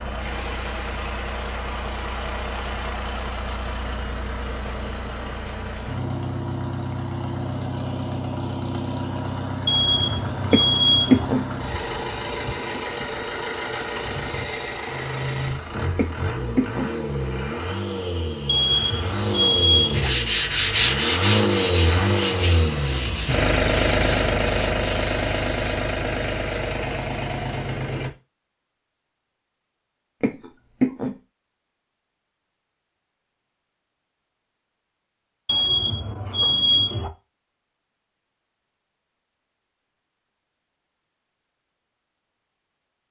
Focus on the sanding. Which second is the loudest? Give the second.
21 s.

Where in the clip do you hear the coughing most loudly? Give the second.
11 s.